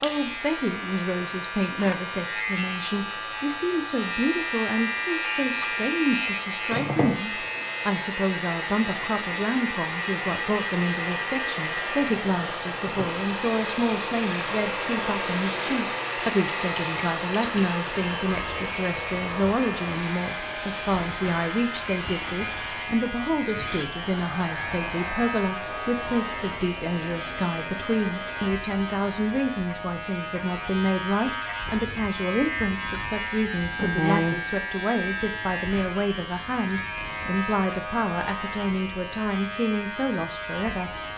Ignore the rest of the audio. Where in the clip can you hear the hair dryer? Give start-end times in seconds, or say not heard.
0.0-28.6.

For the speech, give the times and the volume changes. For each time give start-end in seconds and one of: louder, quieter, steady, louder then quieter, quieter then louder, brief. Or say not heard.
0.0-40.9 steady.